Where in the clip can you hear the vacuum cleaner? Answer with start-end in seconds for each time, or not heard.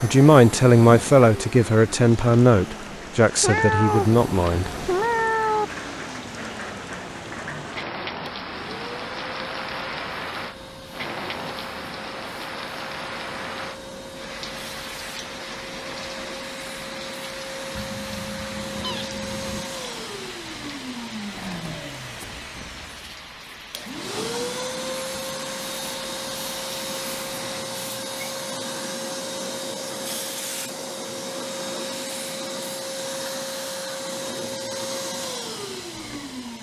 0.0-36.5.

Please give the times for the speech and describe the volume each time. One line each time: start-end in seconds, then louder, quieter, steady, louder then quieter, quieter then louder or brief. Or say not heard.
0.0-4.7 quieter.